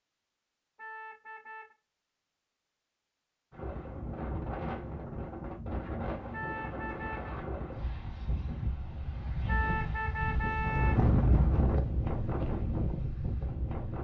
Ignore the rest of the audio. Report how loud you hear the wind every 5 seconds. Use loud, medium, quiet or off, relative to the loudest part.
medium, medium, loud.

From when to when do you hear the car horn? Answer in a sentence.
The car horn can be heard from 0.8 to 1.8 s, from 6.3 to 7.3 s and from 9.4 to 11.0 s.